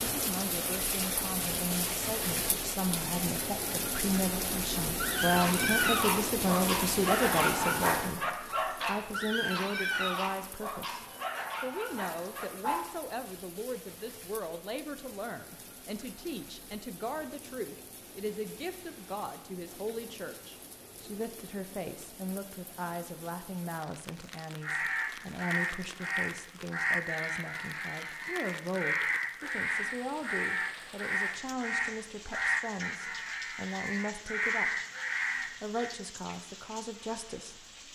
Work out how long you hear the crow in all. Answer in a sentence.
The crow can be heard for 11 seconds in total.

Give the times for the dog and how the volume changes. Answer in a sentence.
You can hear the dog from 4.8 to 12.8 s, getting quieter.